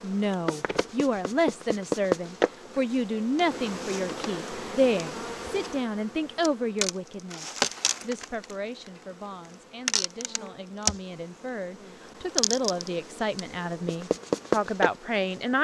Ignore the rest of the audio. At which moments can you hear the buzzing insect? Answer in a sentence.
You can hear the buzzing insect from 0.0 to 15.5 s.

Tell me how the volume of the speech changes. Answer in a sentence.
The volume of the speech goes down, then up.